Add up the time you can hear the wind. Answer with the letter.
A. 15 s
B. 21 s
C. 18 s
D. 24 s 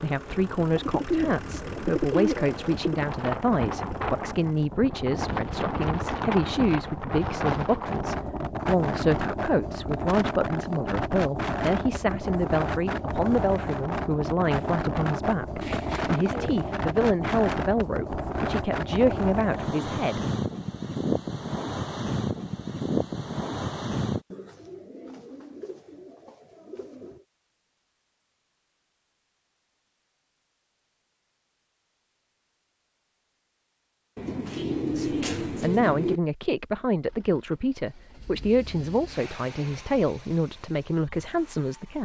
D.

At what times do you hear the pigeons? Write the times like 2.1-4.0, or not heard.
0.7-3.0, 15.6-16.7, 24.3-27.2, 34.1-36.2.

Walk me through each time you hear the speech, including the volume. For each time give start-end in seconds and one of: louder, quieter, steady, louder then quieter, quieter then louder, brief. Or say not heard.
0.0-20.2 steady
34.9-42.0 steady.